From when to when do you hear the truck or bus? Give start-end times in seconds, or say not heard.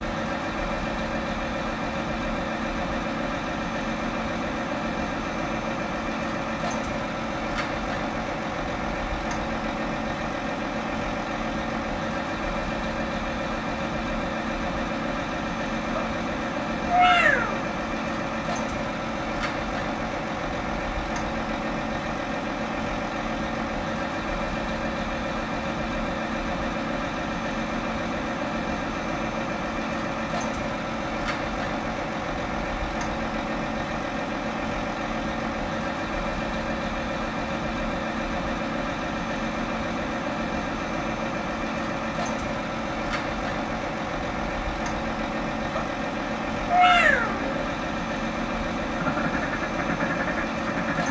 0.0-51.0.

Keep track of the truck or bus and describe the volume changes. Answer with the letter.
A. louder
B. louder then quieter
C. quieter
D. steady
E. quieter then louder
D.